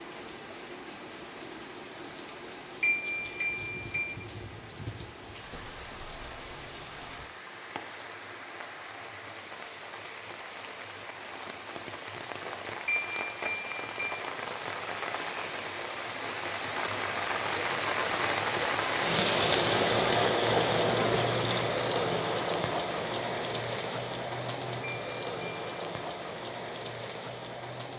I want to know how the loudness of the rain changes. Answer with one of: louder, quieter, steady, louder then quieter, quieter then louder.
louder then quieter.